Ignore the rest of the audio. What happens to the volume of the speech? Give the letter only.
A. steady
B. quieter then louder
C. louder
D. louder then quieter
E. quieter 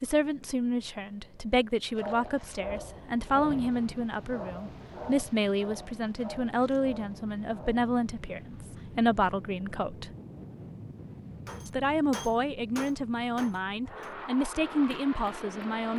A.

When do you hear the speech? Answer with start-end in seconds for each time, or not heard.
0.0-10.1, 11.7-15.9.